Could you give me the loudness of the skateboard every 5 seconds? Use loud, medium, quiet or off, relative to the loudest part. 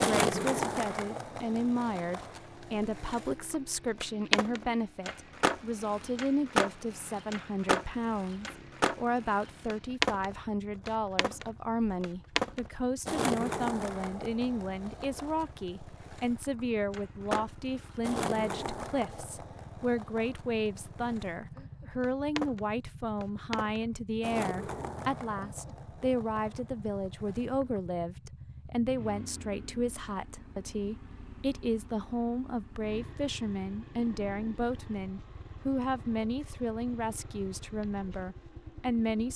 loud, loud, loud, medium, medium, quiet, off, off.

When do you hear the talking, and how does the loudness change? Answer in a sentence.
The talking can be heard from 0.0 to 39.3 s, at a steady volume.